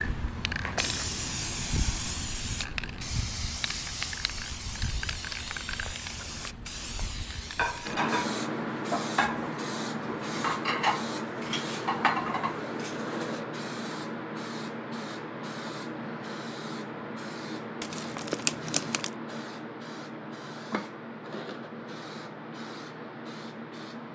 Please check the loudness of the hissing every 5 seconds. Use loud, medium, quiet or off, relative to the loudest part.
loud, loud, loud, loud, medium.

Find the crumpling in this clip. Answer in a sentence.
The crumpling can be heard from 17.8 to 19.1 s.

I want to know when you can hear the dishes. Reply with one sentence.
You can hear the dishes from 7.5 to 13.4 s.